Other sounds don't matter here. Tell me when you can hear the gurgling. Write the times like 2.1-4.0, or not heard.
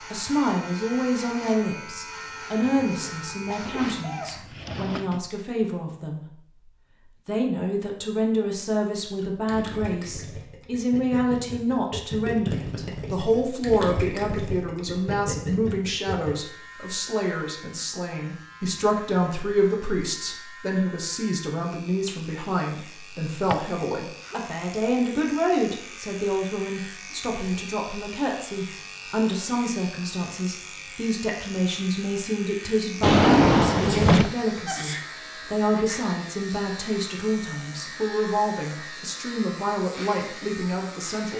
9.2-16.4.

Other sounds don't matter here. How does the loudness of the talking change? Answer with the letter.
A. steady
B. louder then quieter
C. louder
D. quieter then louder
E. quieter
A.